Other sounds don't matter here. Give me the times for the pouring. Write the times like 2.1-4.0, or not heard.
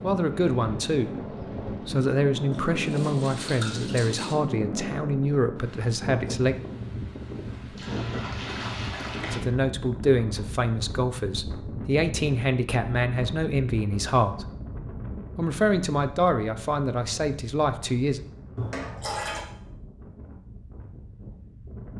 2.5-4.3, 7.6-9.4, 18.6-19.4.